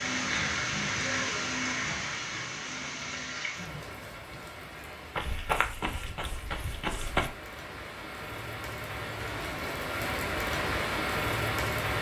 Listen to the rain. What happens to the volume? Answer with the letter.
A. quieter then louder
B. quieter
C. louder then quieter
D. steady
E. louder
A.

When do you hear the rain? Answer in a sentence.
The rain can be heard from 0.0 to 11.9 s.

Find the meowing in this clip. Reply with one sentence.
The meowing can't be heard in this clip.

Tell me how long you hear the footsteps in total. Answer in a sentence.
The footsteps can be heard for 2 seconds in total.